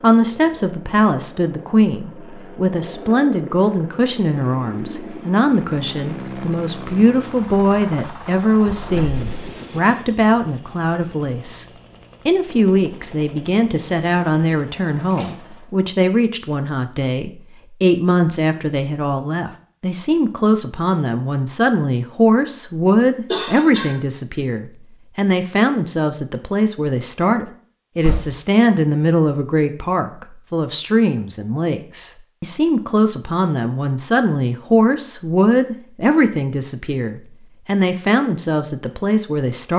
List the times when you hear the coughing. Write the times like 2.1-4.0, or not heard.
23.3-23.9.